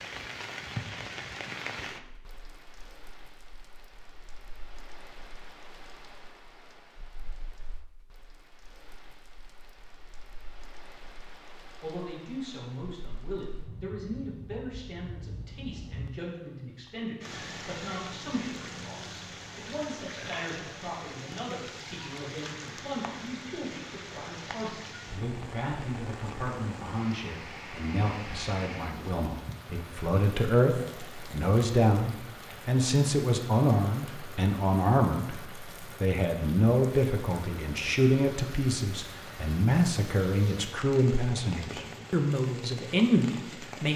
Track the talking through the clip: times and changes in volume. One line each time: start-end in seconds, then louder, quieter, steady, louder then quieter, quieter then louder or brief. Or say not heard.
11.7-43.9 louder.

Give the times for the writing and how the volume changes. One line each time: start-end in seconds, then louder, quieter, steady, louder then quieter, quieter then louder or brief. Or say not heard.
not heard.